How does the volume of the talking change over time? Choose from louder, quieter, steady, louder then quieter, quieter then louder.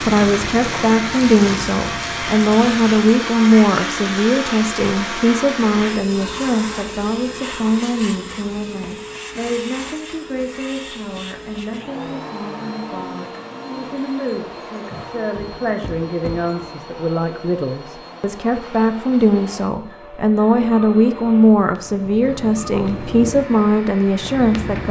quieter then louder.